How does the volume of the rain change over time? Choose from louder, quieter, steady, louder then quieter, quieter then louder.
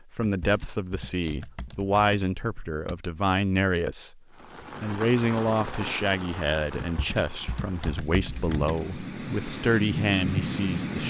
quieter then louder.